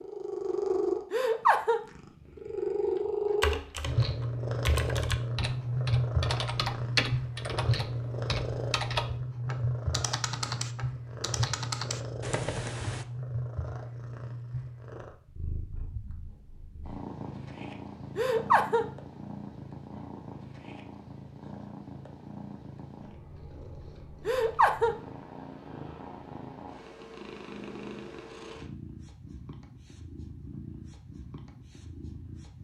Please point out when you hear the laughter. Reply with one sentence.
The laughter can be heard from 1.1 to 1.8 s, from 18.1 to 18.9 s and from 24.2 to 24.9 s.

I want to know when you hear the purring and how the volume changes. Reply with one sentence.
The purring can be heard from 0.0 to 32.5 s, getting quieter.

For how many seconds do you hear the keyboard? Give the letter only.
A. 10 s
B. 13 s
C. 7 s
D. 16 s
A.